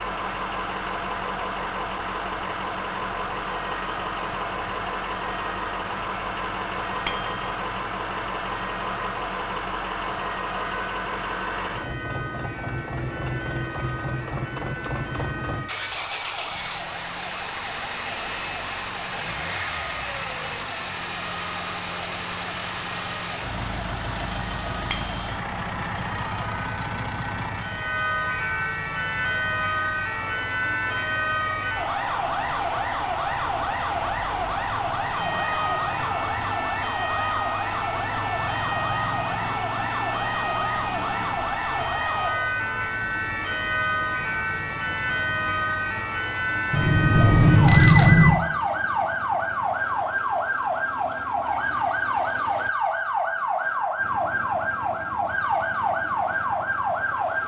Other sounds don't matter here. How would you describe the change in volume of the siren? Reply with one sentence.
The loudness of the siren goes up.